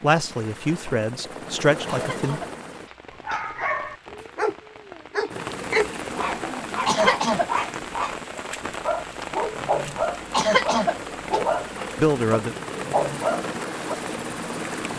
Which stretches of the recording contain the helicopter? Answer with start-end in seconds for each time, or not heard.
0.0-2.9, 5.3-14.9.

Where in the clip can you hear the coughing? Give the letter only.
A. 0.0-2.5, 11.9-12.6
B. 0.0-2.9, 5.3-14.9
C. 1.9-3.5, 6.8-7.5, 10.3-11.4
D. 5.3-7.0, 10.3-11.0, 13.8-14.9
C.